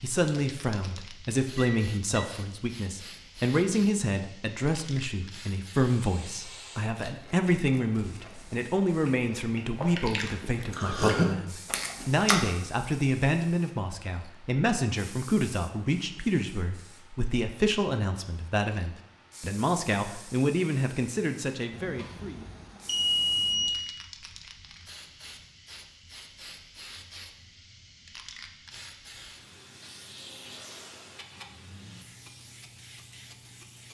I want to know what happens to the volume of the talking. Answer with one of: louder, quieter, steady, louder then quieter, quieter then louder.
steady.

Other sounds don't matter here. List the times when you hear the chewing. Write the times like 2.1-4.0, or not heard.
6.8-12.4.